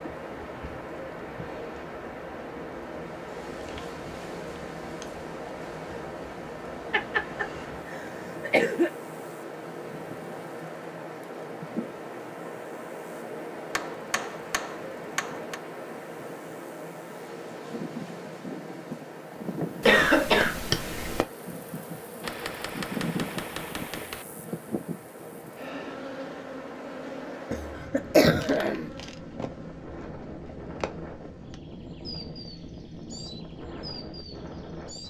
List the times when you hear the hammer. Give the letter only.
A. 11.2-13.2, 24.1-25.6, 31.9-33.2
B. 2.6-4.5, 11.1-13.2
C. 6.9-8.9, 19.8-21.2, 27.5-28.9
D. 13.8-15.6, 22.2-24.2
D.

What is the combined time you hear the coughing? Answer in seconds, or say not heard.
5 s.